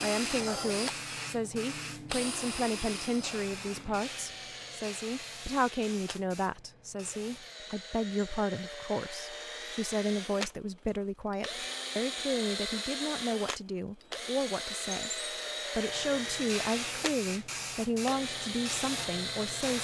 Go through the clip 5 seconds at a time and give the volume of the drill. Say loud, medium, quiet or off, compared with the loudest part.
loud, medium, loud, loud.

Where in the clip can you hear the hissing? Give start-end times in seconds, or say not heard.
0.0-7.5, 15.7-19.7.